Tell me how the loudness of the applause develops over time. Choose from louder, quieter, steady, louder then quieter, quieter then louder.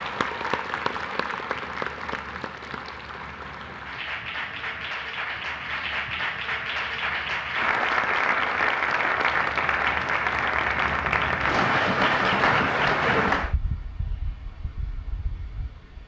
louder.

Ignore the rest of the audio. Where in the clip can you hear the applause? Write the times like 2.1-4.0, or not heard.
0.0-13.6.